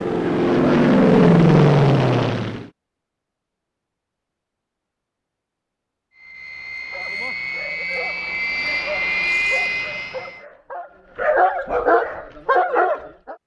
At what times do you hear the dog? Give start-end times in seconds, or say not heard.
6.9-13.3.